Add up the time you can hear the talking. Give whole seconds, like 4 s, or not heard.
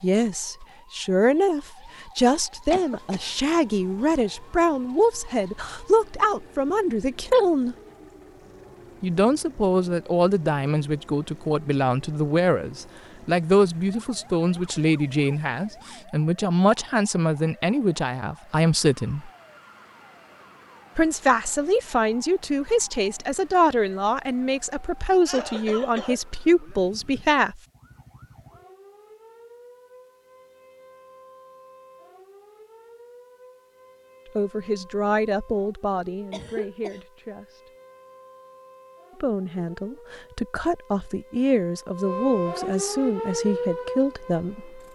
34 s.